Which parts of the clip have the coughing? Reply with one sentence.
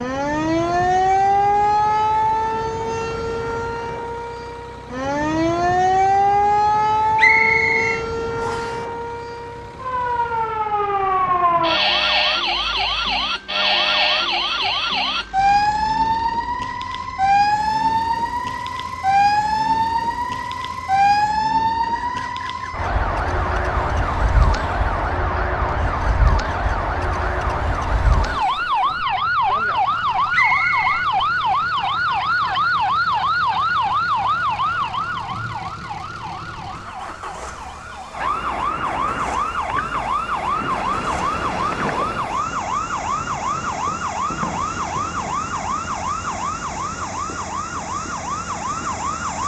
You can't hear the coughing here.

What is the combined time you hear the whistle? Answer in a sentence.
The whistle can be heard for 2 seconds in total.